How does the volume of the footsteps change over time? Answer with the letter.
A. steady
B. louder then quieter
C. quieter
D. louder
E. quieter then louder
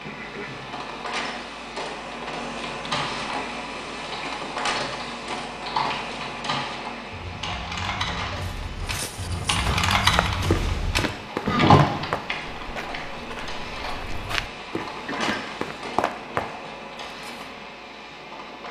A.